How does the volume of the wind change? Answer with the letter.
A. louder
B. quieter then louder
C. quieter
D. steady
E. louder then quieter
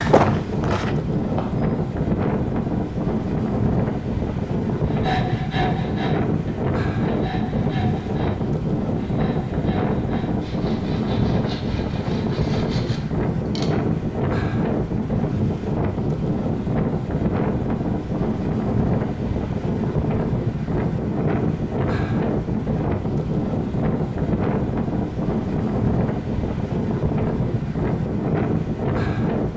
D.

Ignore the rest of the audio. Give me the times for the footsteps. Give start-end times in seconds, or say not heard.
0.0-1.7.